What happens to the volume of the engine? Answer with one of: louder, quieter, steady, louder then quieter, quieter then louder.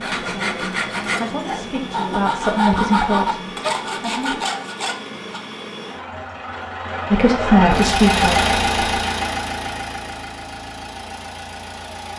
louder then quieter.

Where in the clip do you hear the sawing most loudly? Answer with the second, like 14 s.
3 s.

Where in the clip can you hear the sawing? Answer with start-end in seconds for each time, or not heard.
0.0-5.4.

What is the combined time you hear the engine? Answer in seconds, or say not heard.
12 s.